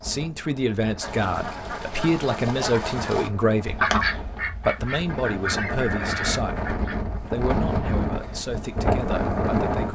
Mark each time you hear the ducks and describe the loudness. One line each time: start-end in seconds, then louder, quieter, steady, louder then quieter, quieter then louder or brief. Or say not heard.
1.0-7.3 louder then quieter.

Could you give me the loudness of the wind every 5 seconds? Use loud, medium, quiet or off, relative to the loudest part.
quiet, loud.